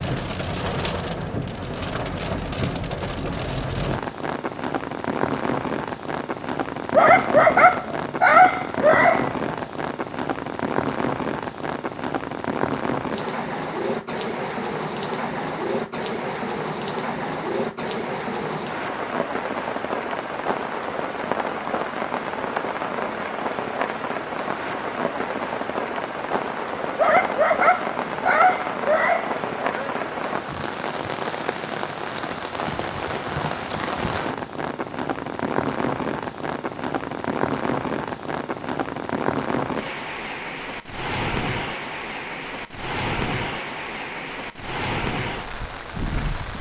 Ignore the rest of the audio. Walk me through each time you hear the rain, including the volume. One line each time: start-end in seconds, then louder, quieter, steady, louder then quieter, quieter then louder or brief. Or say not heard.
0.0-46.5 steady.